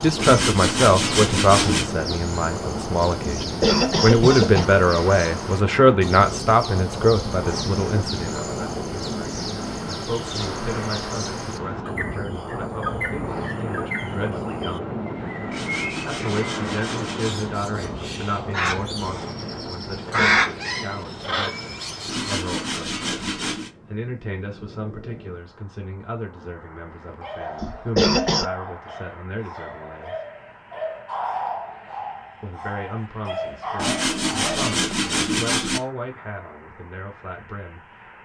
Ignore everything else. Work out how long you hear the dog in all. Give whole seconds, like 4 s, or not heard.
8 s.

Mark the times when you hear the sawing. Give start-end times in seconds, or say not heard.
0.1-1.9, 15.5-17.5, 22.1-23.7, 33.8-35.8.